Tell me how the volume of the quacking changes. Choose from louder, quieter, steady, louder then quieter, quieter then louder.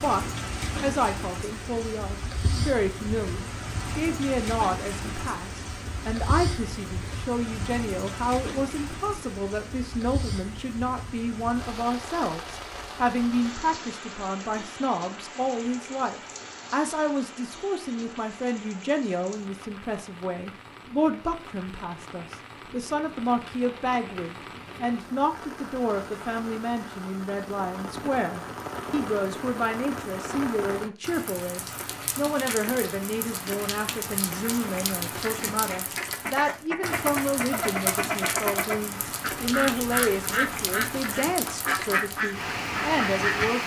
steady.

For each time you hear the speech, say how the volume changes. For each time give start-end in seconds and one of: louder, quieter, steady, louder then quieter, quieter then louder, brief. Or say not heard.
0.0-43.6 steady.